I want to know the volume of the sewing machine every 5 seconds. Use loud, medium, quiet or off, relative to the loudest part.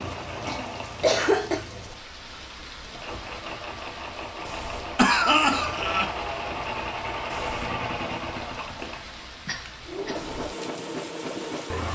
medium, loud, loud.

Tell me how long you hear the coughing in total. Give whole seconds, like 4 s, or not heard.
3 s.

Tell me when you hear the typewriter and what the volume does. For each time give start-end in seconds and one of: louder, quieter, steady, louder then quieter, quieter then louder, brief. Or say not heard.
not heard.